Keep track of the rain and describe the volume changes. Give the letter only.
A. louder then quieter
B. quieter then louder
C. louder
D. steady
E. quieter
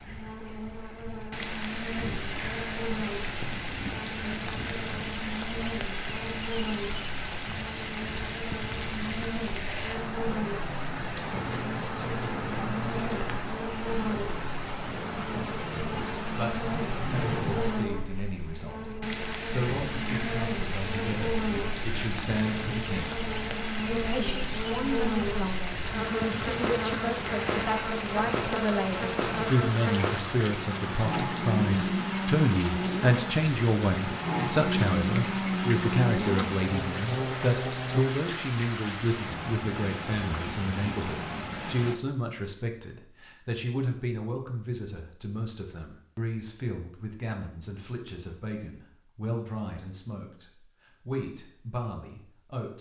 D.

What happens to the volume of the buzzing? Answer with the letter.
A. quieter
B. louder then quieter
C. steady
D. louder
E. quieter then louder
D.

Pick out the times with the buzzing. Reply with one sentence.
You can hear the buzzing from 0.0 to 38.0 s.